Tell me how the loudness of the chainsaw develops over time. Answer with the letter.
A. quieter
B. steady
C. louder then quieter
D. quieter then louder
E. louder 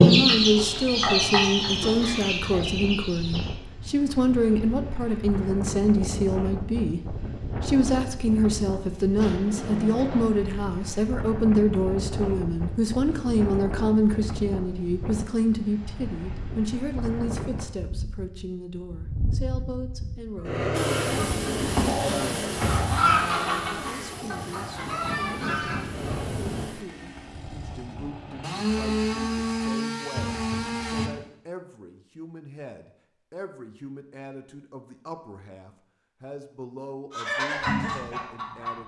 D.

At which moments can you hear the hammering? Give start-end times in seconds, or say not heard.
not heard.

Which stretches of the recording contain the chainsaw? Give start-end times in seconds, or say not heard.
20.7-31.1.